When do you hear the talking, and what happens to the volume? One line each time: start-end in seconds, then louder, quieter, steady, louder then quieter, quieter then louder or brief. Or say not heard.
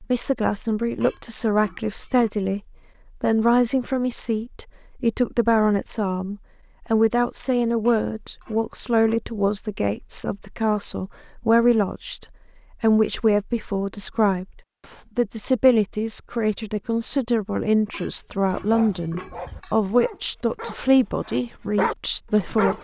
0.0-2.6 brief
3.2-22.7 steady.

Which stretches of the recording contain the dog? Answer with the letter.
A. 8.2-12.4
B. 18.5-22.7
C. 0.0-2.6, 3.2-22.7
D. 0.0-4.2
B.